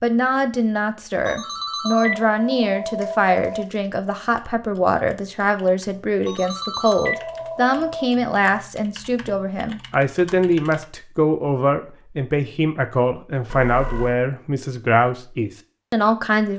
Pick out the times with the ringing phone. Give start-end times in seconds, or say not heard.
1.2-3.7, 6.2-8.2, 13.4-14.2.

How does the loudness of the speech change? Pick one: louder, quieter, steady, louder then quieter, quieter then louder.
steady.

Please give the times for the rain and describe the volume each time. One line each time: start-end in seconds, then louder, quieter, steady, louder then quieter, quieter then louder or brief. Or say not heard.
not heard.